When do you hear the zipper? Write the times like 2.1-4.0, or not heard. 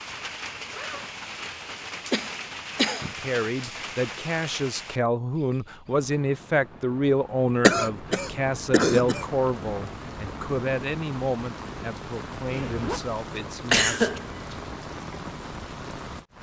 0.6-1.2, 12.4-13.0.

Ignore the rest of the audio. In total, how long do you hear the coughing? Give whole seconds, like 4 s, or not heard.
3 s.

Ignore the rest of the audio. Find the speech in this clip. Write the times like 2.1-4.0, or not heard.
3.1-14.2.